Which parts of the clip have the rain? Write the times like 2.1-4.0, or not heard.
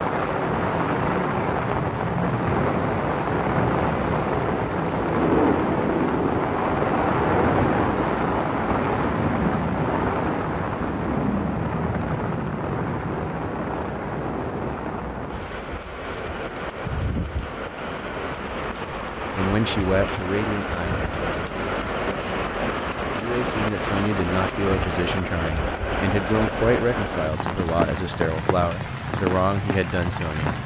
0.0-30.6.